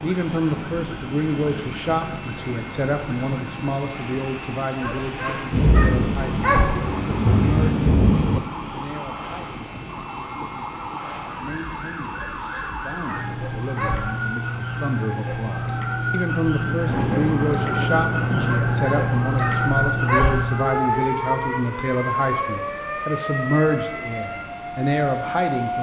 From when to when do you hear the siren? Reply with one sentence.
You can hear the siren from 0.2 to 25.7 s.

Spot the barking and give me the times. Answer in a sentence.
The barking can be heard from 4.8 to 6.8 s, from 12.2 to 14.1 s and from 18.4 to 20.4 s.